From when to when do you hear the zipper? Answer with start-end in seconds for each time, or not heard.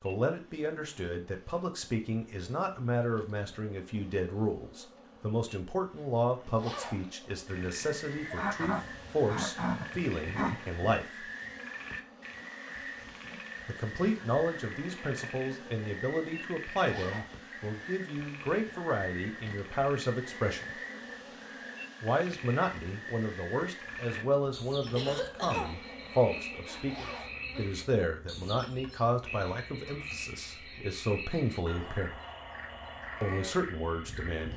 6.5-7.0, 16.8-17.4, 26.9-27.4.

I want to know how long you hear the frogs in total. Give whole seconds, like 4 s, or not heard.
27 s.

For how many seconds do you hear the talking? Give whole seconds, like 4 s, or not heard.
30 s.